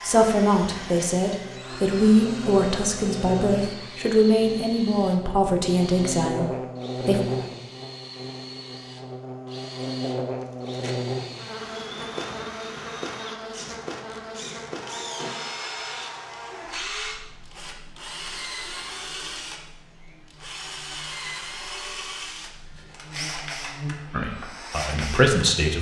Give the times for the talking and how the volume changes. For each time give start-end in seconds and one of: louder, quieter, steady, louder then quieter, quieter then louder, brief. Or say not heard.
0.0-7.2 steady
24.1-25.7 brief.